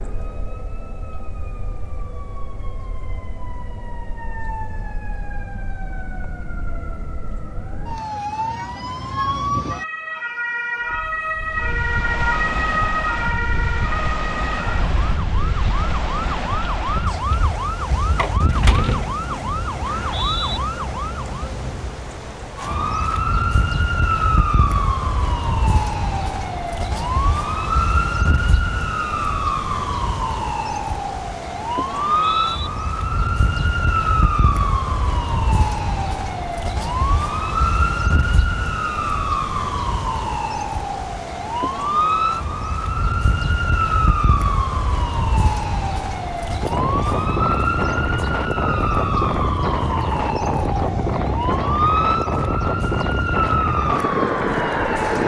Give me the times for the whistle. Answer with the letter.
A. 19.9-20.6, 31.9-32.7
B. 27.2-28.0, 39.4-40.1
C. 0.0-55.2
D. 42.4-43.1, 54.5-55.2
A.